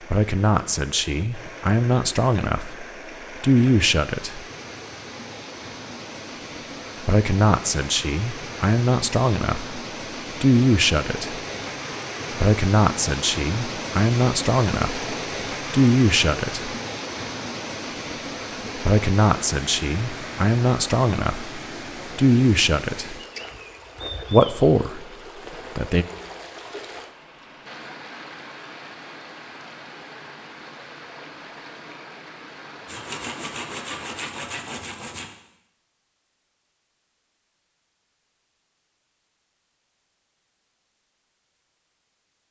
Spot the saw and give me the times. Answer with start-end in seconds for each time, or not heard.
32.9-35.4.